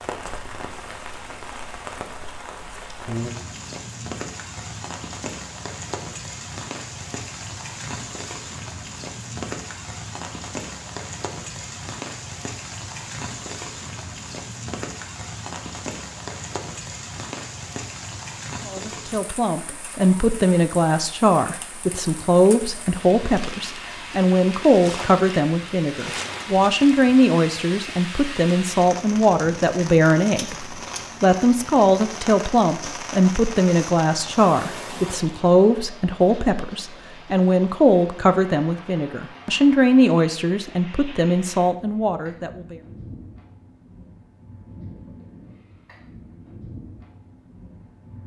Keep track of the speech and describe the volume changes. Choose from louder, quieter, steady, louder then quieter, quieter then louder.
steady.